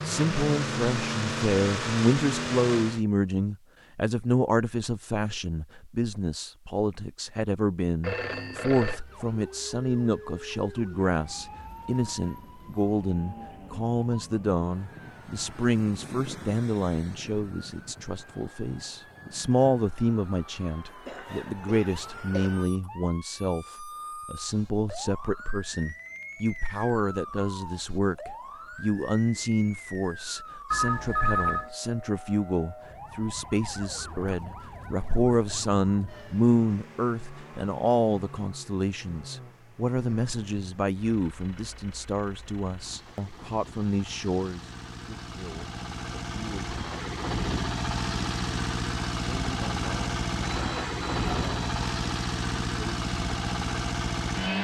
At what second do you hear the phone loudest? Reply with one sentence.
The loudest moment of the phone is at 31 seconds.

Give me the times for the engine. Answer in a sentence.
You can hear the engine from 0.0 to 3.0 s and from 36.2 to 54.6 s.